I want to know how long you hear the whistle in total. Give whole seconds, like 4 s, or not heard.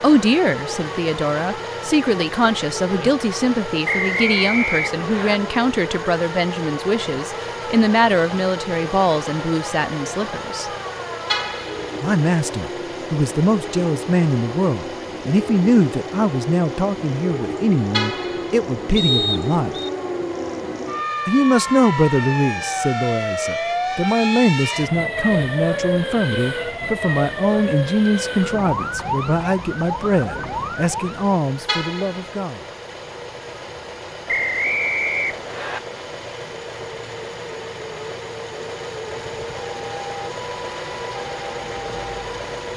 4 s.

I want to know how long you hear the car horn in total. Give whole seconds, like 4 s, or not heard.
2 s.